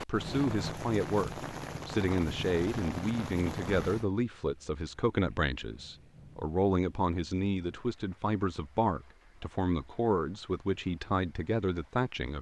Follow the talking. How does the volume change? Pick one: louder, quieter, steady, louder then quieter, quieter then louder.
steady.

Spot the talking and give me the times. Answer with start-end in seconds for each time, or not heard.
0.0-12.3.